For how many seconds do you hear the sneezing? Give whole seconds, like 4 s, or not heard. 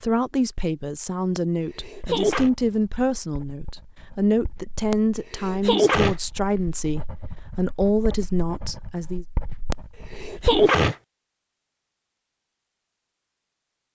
4 s.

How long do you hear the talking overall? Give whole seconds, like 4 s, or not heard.
9 s.